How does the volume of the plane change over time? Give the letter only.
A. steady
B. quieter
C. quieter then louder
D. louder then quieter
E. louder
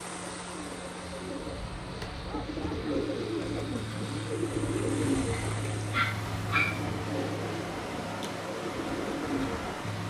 D.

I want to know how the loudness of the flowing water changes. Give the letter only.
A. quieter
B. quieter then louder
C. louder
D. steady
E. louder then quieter
C.